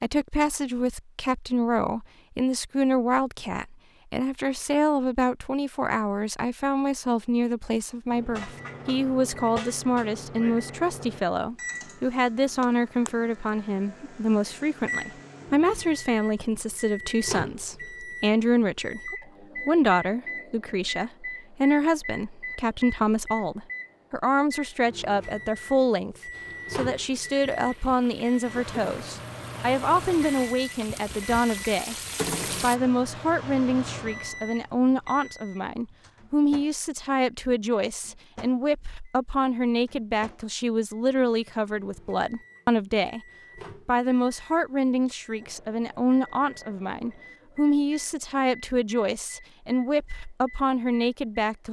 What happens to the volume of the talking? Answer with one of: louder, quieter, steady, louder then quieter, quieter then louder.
steady.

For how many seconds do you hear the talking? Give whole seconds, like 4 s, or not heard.
51 s.